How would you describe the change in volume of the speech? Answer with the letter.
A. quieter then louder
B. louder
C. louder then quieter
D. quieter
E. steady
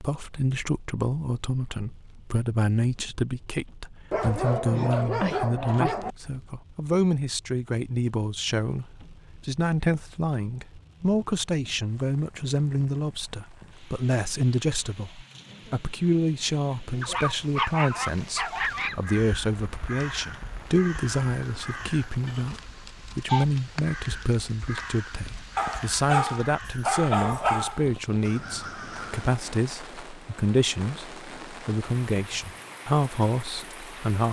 E.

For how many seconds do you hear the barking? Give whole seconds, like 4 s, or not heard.
6 s.